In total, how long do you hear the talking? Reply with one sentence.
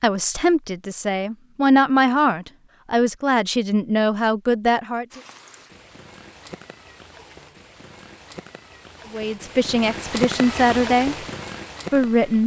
The talking can be heard for 8 seconds in total.